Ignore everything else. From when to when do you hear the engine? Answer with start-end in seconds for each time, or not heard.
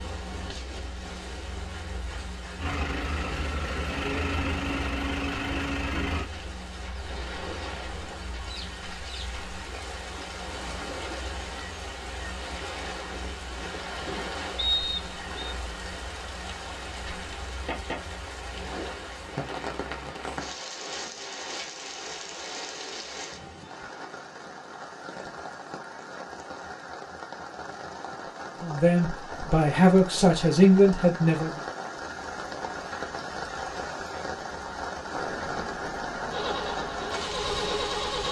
2.5-6.3, 36.3-38.2.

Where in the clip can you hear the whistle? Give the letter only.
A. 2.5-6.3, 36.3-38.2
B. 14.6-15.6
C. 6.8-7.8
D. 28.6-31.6
B.